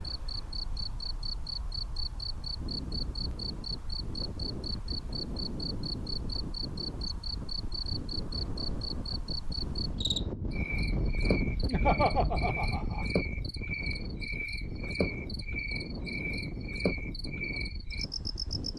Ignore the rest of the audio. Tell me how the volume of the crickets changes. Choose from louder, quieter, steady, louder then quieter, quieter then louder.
steady.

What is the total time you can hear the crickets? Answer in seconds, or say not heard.
19 s.